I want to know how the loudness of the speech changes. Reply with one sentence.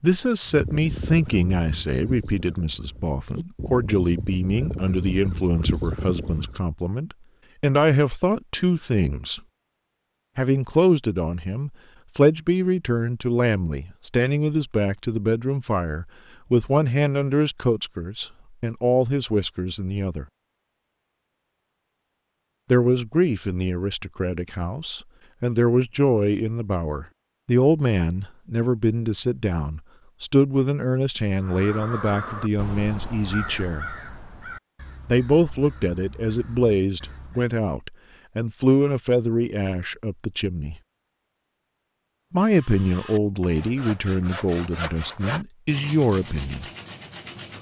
The loudness of the speech stays about the same.